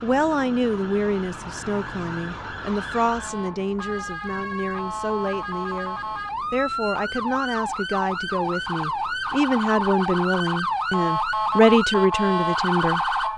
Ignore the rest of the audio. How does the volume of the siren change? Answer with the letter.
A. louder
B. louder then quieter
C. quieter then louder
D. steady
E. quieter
A.